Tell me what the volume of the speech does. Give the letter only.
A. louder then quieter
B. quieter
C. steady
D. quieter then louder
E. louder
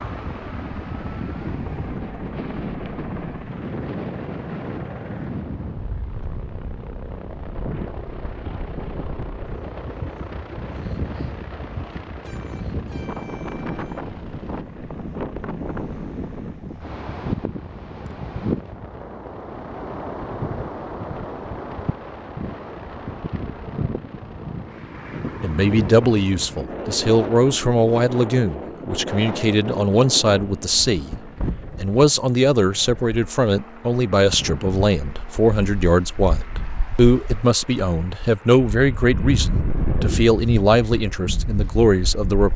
C.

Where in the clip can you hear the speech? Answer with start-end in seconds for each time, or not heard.
25.4-31.2, 31.8-42.5.